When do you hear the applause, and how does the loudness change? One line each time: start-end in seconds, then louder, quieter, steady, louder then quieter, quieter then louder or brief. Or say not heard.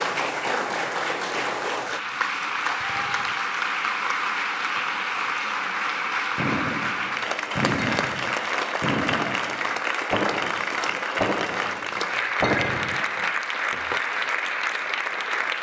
0.0-15.5 steady.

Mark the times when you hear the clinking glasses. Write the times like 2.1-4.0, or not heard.
2.8-3.4, 8.0-8.4, 12.4-13.1.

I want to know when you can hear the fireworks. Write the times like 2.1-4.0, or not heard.
6.3-14.0.